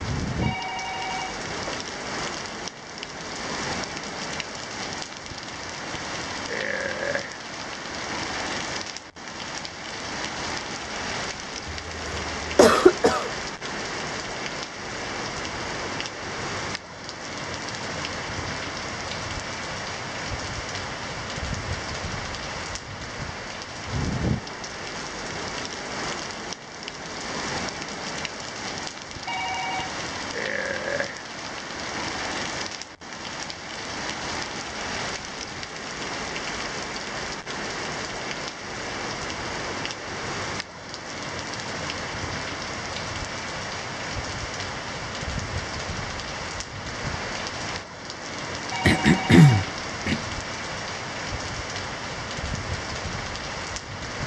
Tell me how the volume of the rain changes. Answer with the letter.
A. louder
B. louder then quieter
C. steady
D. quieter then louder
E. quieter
C.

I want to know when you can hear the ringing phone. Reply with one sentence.
You can hear the ringing phone from 0.4 to 1.9 s, from 29.2 to 29.9 s and from 48.7 to 49.8 s.